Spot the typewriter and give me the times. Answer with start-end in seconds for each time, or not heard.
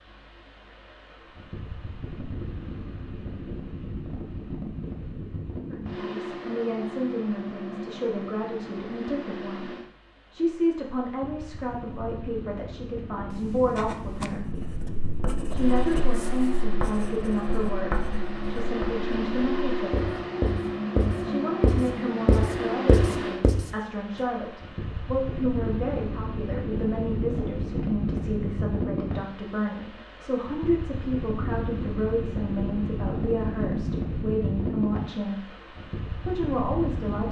not heard.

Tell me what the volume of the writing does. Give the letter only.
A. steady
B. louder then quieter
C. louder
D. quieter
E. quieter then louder
C.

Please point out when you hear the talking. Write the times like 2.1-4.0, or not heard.
5.7-14.5, 15.5-20.1, 21.2-35.5, 36.2-37.2.